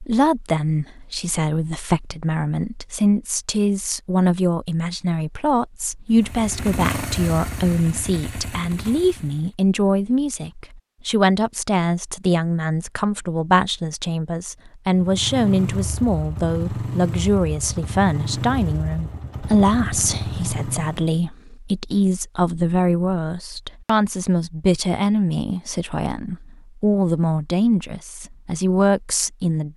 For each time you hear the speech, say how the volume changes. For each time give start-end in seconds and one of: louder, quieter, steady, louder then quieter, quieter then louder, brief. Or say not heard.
0.0-29.7 steady.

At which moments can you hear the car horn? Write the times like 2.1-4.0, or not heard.
not heard.